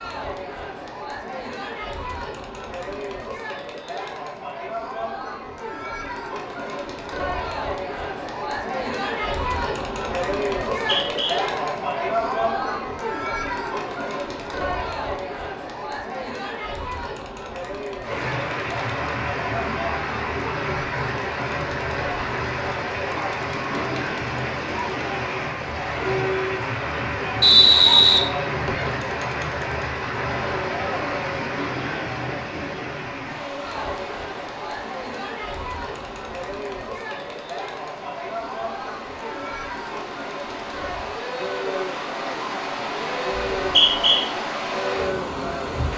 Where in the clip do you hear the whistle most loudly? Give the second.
28 s.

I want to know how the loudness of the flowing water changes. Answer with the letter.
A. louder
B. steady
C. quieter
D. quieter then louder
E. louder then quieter
D.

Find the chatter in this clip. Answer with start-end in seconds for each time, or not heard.
0.0-45.8.